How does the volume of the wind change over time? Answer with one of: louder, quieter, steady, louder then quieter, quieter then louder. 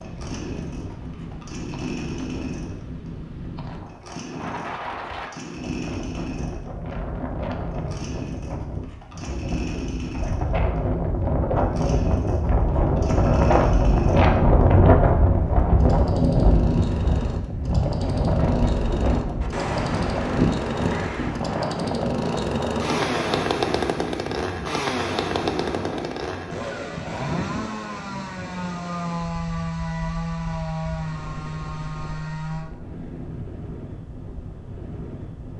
louder then quieter.